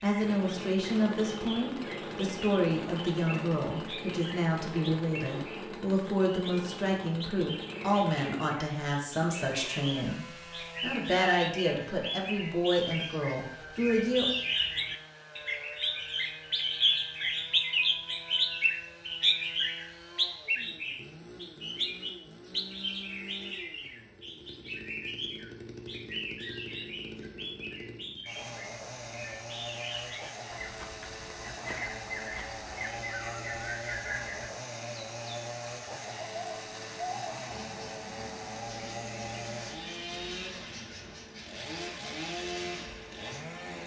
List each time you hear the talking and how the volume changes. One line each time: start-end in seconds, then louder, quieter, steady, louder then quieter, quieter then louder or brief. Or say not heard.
0.0-14.2 steady.